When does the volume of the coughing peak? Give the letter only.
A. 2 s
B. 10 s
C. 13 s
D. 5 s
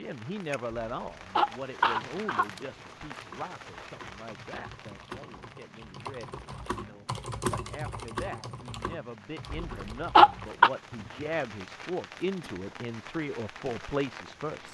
B.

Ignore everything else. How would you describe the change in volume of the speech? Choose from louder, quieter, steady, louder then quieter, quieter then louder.
quieter then louder.